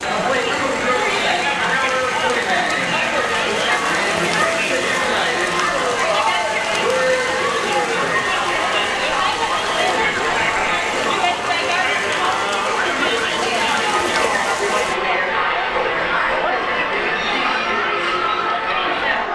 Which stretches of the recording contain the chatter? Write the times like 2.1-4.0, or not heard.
0.0-19.2.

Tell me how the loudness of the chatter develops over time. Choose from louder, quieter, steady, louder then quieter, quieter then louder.
steady.